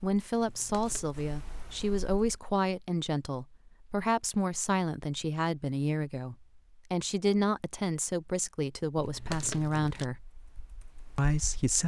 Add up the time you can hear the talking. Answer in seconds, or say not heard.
11 s.